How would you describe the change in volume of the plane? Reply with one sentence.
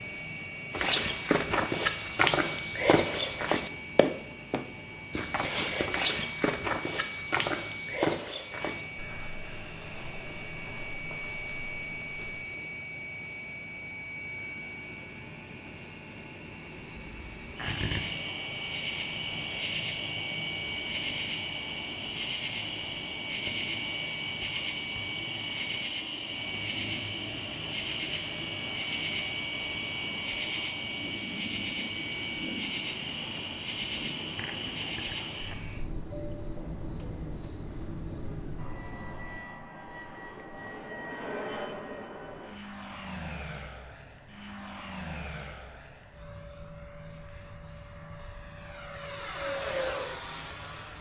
The loudness of the plane stays about the same.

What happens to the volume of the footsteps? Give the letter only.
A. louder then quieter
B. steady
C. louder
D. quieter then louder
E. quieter
E.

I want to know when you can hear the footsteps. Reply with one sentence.
You can hear the footsteps from 0.7 to 12.4 s.